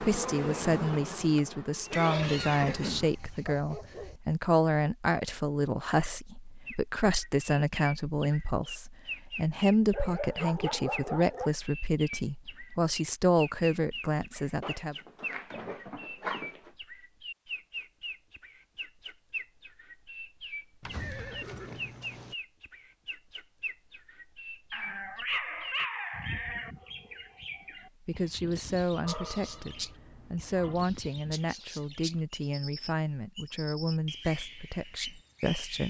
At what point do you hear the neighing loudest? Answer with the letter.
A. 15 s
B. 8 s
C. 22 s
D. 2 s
D.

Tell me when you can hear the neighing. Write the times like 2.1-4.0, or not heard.
1.8-3.4, 20.8-22.4.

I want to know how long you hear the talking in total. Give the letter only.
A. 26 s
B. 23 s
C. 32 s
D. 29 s
B.